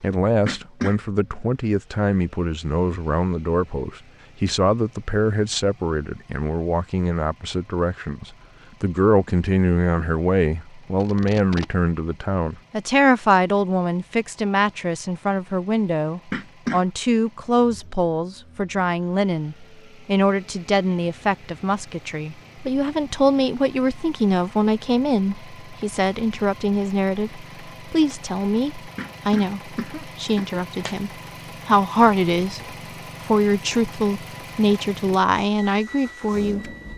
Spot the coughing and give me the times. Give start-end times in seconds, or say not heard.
0.5-0.9, 16.3-16.9, 28.9-30.9.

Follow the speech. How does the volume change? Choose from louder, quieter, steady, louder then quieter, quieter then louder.
steady.